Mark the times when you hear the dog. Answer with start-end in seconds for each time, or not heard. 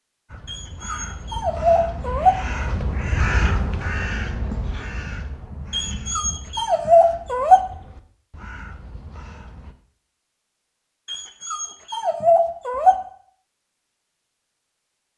0.5-2.4, 5.7-7.6, 11.1-12.9.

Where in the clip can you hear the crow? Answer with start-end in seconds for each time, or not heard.
0.2-9.8.